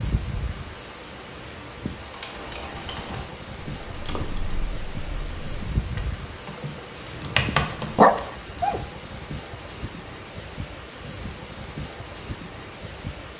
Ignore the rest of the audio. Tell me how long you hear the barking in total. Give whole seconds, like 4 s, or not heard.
2 s.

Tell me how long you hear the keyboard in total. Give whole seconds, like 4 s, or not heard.
6 s.